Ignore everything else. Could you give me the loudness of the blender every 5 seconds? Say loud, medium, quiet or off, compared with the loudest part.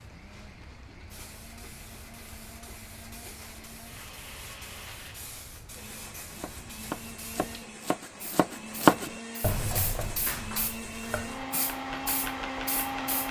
quiet, medium, loud.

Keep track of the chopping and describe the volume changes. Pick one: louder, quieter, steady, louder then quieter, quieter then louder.
louder then quieter.